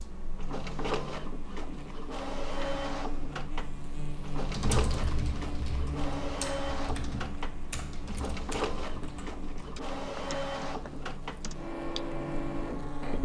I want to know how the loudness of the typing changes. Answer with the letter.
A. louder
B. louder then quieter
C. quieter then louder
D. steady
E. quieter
E.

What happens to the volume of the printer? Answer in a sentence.
The loudness of the printer stays about the same.